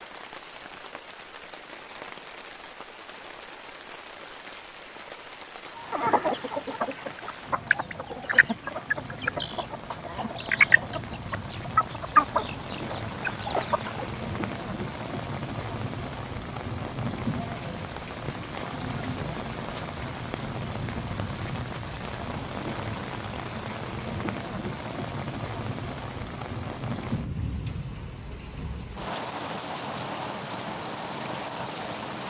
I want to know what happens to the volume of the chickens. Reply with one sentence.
The volume of the chickens goes up, then down.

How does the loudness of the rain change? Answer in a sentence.
The loudness of the rain goes up.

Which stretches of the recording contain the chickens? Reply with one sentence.
You can hear the chickens from 5.8 to 14.1 s.